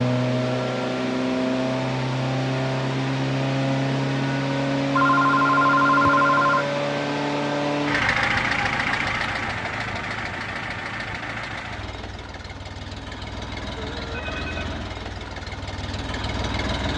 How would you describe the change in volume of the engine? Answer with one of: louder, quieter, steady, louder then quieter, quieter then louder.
quieter.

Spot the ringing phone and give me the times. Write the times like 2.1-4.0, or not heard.
5.0-6.7, 13.8-14.7.